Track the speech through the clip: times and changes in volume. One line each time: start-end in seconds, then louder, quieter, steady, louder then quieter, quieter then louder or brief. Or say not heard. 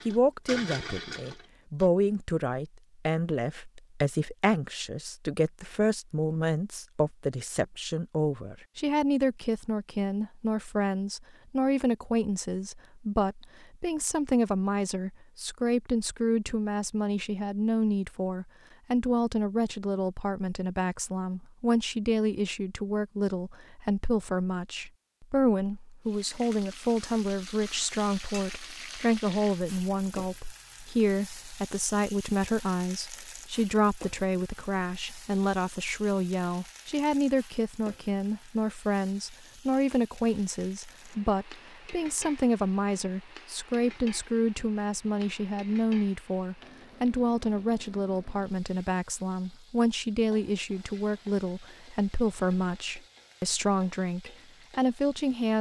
0.1-55.5 steady.